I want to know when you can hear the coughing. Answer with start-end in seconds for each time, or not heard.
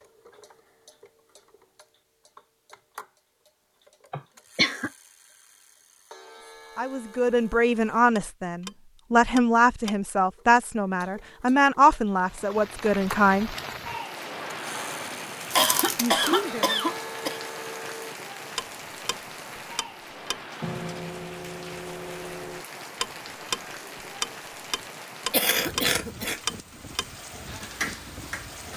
4.1-4.9, 15.6-17.4, 25.3-26.4.